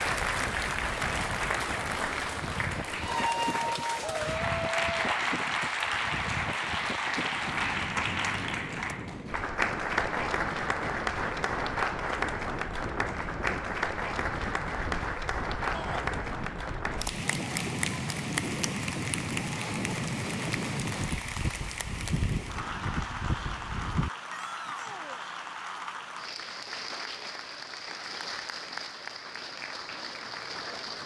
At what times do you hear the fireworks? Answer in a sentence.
You can't hear the fireworks here.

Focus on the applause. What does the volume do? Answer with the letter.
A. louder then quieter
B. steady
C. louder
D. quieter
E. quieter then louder
D.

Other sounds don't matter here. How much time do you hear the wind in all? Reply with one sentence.
You can hear the wind for 24 seconds altogether.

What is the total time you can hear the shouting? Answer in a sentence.
The shouting can be heard for 2 seconds in total.